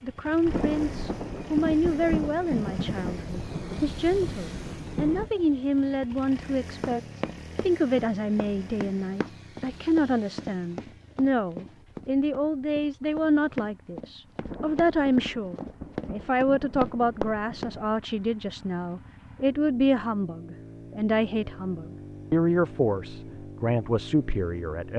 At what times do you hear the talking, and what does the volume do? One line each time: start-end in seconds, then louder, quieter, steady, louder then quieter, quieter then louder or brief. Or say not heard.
0.0-24.9 steady.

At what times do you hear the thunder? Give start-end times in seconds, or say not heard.
0.5-5.3, 14.4-18.0.